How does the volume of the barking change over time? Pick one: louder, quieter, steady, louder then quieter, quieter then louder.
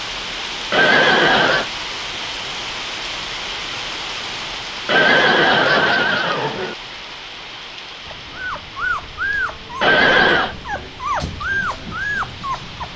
steady.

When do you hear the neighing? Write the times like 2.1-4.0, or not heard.
0.7-1.7, 4.8-6.8, 9.8-10.6.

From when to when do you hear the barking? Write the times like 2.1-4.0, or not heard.
8.1-12.9.